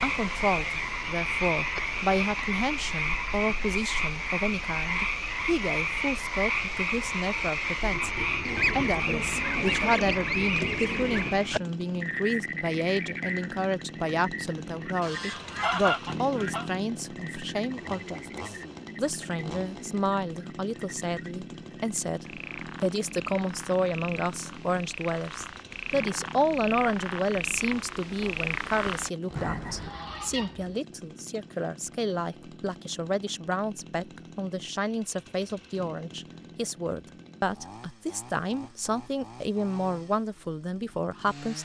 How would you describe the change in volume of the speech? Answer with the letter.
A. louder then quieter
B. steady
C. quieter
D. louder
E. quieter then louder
B.